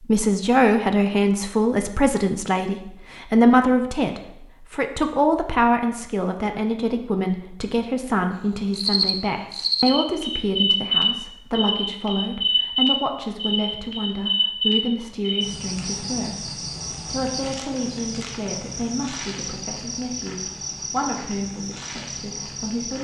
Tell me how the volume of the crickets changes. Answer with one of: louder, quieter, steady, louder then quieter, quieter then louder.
quieter.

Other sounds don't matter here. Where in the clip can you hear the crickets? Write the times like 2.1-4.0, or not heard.
8.7-22.9.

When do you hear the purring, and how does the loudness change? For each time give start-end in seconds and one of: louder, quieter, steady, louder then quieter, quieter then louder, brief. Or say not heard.
not heard.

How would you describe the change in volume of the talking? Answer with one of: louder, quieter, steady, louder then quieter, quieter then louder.
quieter.